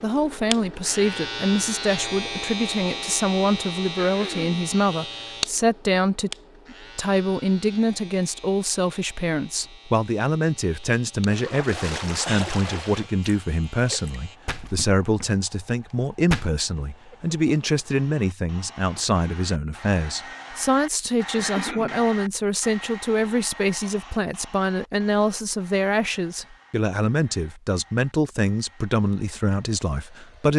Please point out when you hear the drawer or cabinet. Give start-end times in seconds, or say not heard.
not heard.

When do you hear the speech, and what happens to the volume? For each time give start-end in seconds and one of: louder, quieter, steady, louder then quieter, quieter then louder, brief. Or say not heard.
0.0-30.5 steady.